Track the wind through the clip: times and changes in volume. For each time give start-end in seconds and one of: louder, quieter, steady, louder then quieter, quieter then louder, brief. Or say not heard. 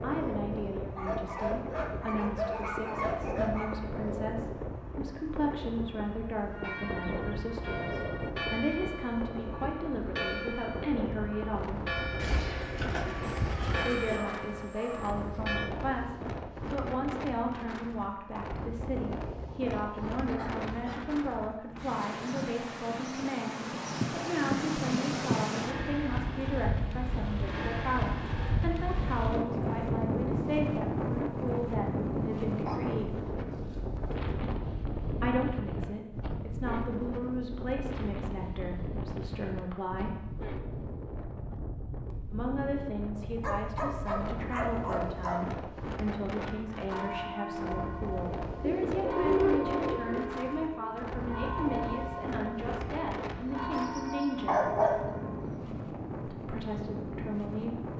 0.0-57.9 louder then quieter.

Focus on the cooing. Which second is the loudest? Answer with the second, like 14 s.
49 s.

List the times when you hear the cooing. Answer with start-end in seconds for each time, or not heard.
12.2-14.2, 48.6-50.2.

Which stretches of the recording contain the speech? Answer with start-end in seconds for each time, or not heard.
0.0-11.8, 13.8-33.2, 35.2-40.1, 42.3-54.7, 56.2-57.9.